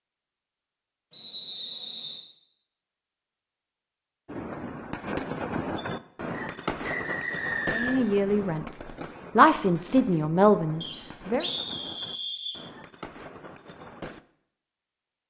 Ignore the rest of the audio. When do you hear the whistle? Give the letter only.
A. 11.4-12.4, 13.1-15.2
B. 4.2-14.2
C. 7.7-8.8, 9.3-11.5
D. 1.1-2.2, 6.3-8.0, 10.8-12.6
D.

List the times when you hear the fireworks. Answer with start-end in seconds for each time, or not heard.
4.2-14.2.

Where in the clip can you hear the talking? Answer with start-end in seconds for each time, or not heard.
7.7-8.8, 9.3-11.5.